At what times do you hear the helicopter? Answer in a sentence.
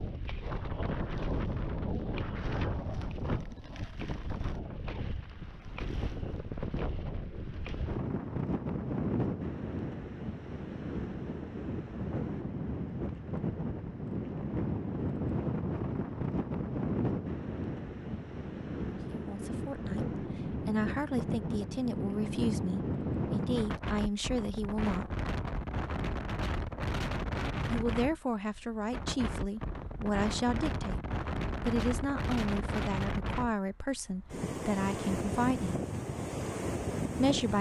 The helicopter can't be heard in this clip.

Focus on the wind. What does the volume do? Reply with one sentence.
The loudness of the wind stays about the same.